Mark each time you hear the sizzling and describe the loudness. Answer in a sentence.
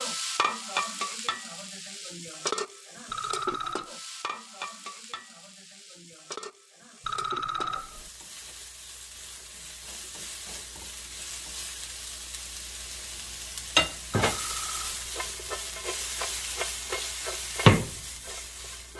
The sizzling can be heard from 0.0 to 18.9 s, getting quieter then louder.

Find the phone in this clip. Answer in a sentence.
You can hear the phone from 3.0 to 3.9 s, from 7.0 to 8.1 s and from 14.1 to 15.1 s.